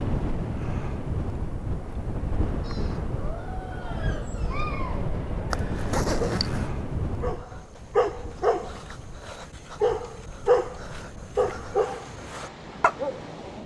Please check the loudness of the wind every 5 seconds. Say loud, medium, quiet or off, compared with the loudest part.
loud, loud, medium.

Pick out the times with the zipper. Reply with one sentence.
You can hear the zipper from 5.5 to 6.7 s.